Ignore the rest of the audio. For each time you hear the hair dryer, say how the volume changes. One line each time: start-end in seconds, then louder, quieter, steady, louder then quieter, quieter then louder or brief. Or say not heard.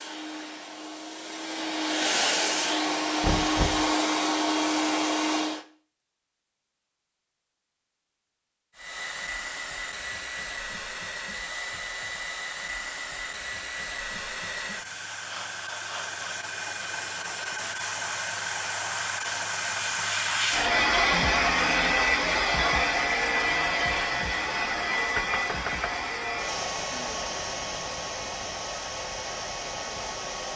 0.0-5.7 louder
8.8-30.5 louder then quieter.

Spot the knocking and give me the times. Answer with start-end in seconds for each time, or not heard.
3.2-3.9, 25.1-25.9.